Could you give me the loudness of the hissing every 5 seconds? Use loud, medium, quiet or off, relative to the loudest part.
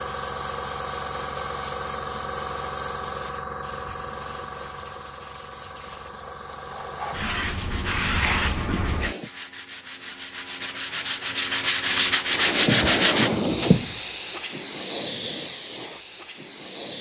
medium, medium, loud, medium.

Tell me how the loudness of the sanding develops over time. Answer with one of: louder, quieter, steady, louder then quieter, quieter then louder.
louder.